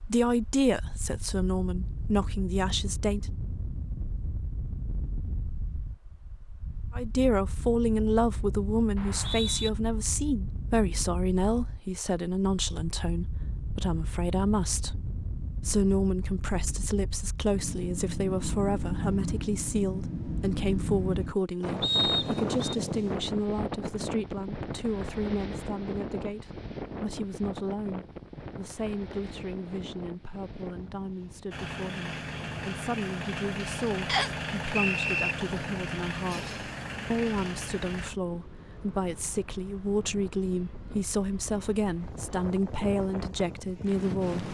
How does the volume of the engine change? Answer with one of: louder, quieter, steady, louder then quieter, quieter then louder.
steady.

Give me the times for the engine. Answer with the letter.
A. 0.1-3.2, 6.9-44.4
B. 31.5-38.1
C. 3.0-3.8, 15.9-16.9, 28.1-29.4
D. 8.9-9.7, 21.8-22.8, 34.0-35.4
B.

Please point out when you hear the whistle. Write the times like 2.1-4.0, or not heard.
8.9-9.7, 21.8-22.8, 34.0-35.4.